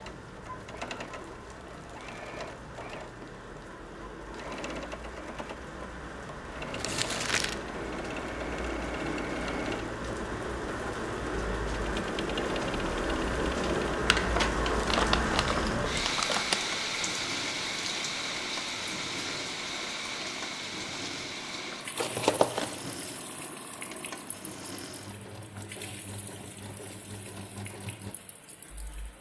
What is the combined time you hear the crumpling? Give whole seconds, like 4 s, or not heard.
4 s.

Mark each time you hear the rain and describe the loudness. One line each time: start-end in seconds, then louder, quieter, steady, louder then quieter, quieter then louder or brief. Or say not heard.
0.0-29.1 louder then quieter.